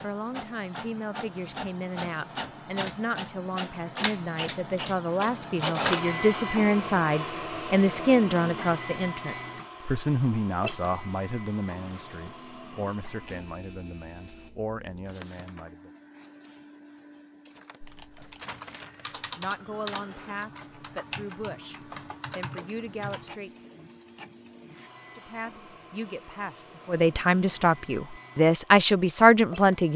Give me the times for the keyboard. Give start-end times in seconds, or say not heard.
17.8-23.4.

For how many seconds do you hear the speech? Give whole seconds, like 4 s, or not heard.
25 s.